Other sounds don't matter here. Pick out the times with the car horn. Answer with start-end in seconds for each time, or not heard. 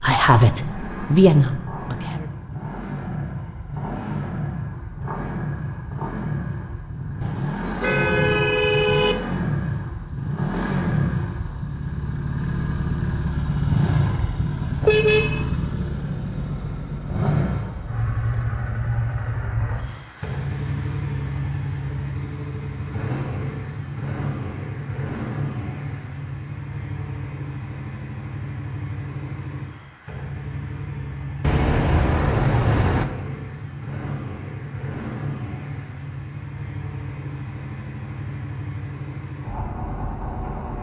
7.2-9.2, 14.8-15.4, 31.4-33.0.